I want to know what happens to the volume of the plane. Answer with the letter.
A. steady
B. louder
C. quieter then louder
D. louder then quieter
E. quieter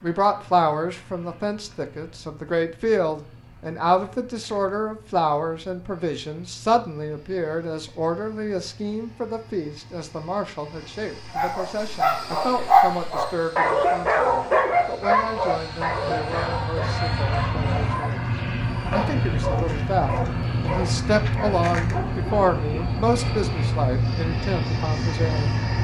B.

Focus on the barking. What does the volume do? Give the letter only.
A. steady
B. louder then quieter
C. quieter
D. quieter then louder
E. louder
C.